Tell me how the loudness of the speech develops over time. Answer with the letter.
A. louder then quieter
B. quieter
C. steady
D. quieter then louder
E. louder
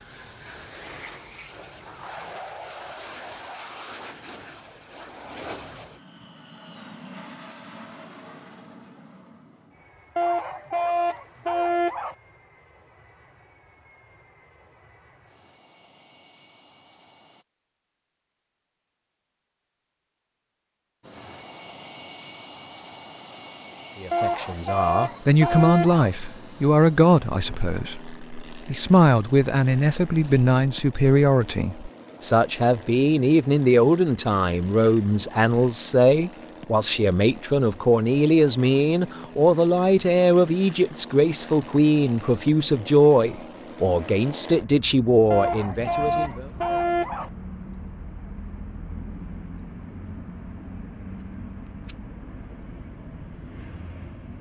C.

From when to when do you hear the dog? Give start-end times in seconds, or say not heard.
10.2-12.2, 24.1-26.1, 45.3-47.3.